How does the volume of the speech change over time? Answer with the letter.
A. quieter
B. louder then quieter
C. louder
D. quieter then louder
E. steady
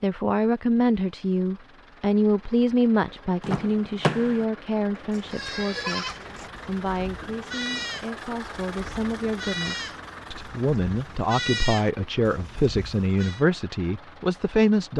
D.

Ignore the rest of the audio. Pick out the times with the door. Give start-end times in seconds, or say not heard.
3.4-4.5.